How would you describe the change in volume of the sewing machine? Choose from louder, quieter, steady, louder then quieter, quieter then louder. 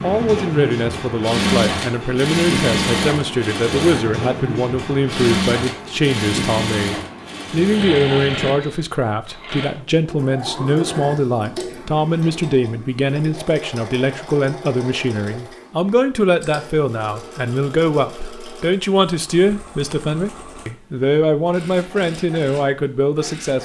quieter.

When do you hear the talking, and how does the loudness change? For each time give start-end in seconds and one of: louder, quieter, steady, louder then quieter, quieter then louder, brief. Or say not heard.
0.0-23.6 steady.